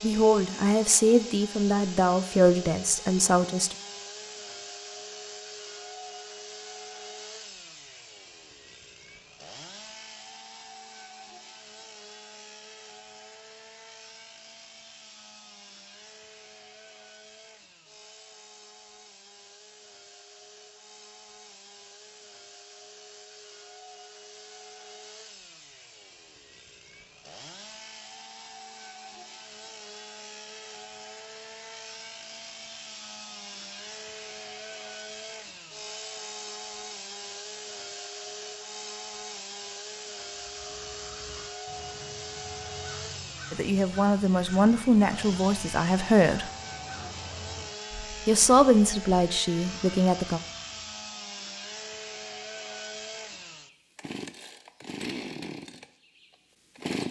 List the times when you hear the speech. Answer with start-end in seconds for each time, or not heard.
0.0-3.8, 43.5-46.5, 48.2-50.4.